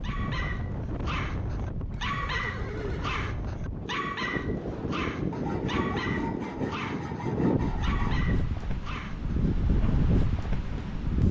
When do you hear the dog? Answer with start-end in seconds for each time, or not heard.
0.0-10.0.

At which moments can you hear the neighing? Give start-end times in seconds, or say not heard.
1.9-3.2.